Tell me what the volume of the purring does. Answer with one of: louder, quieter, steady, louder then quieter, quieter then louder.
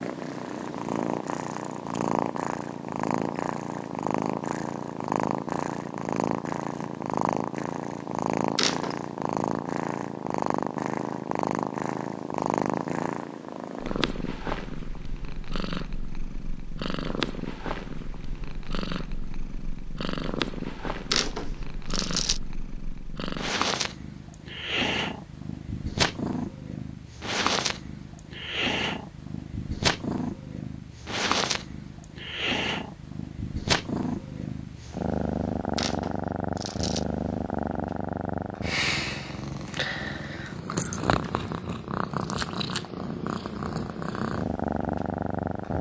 steady.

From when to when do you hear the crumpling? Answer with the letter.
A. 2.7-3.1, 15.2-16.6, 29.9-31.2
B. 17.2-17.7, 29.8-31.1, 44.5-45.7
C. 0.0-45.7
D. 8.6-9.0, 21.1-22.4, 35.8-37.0
D.